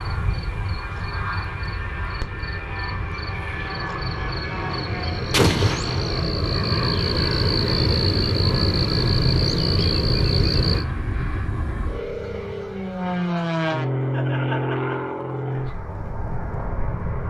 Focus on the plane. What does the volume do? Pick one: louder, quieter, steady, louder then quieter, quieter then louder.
louder.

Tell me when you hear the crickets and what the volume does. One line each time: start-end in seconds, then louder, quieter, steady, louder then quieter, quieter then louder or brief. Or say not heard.
0.0-10.8 louder.